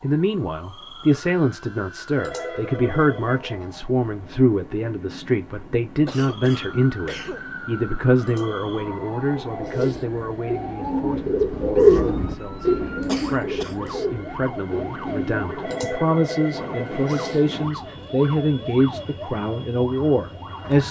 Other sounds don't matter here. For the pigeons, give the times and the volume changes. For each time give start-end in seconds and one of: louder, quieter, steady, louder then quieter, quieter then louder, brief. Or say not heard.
9.4-15.7 louder then quieter.